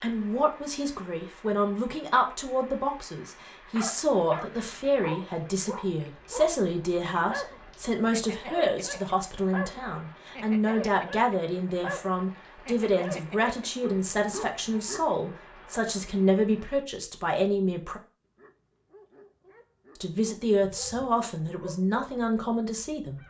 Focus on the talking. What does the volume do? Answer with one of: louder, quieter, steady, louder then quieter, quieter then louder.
steady.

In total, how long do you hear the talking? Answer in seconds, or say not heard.
21 s.